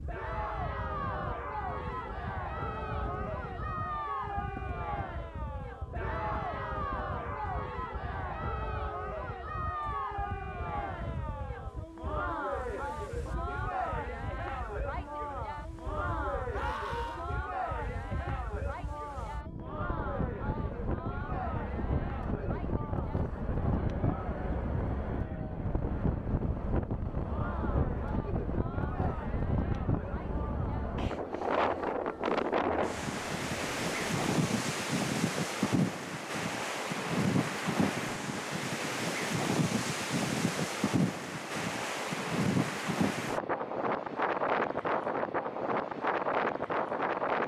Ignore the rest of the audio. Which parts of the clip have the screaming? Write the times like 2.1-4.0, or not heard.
16.5-17.2.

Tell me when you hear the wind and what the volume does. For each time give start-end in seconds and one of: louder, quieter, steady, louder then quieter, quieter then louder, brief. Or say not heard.
0.0-47.4 louder.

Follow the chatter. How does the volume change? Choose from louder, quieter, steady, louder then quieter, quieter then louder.
quieter.